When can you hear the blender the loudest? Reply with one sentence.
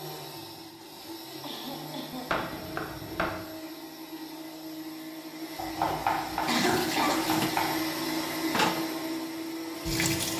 The loudest moment of the blender is at 8 seconds.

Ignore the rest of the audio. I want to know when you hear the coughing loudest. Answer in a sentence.
The loudest moment of the coughing is at 7 seconds.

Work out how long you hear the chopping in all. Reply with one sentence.
The chopping can be heard for 3 seconds in total.